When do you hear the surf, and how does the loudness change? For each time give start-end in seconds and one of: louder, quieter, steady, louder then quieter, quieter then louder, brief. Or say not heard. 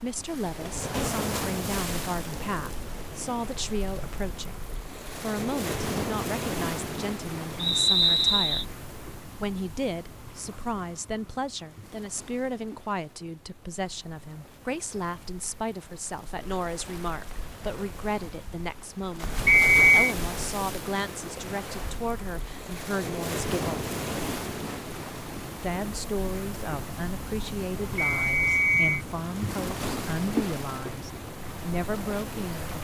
0.0-32.7 quieter then louder.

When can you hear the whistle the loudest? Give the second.
20 s.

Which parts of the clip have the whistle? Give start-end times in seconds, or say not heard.
7.6-8.7, 19.4-20.1, 27.9-29.1.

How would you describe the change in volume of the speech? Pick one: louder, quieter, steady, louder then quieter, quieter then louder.
steady.